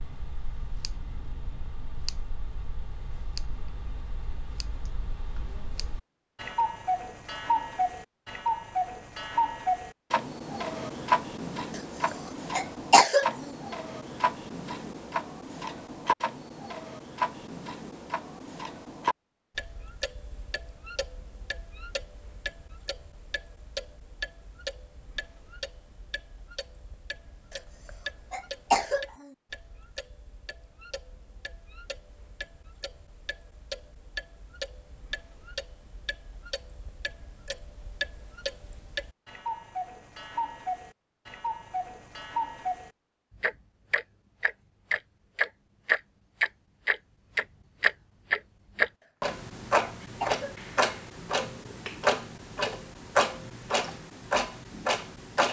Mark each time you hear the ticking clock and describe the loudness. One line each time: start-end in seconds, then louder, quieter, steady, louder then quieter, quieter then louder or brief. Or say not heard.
0.0-55.4 quieter then louder.